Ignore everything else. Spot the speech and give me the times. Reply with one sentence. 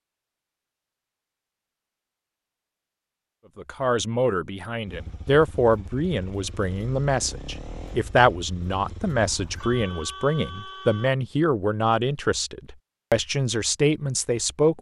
You can hear the speech from 3.5 to 14.7 s.